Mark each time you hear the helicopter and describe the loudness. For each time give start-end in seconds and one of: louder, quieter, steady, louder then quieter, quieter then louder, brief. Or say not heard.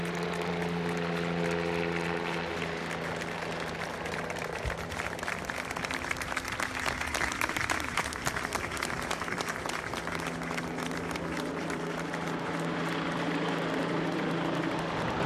0.0-15.2 quieter then louder.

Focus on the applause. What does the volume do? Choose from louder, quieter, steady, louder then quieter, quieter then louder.
louder then quieter.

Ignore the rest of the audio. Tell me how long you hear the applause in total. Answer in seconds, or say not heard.
15 s.